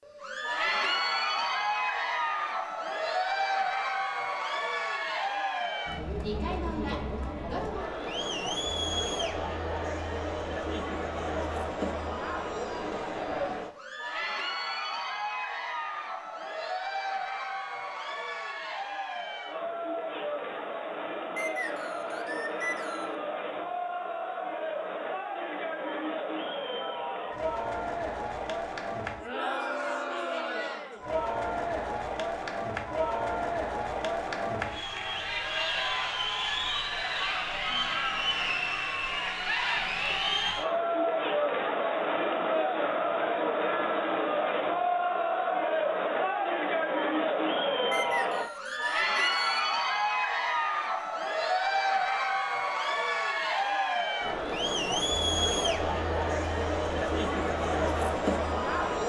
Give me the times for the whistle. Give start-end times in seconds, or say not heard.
21.4-23.1, 47.9-49.5.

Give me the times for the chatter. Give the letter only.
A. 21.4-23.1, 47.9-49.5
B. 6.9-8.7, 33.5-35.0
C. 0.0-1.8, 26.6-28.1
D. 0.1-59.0
D.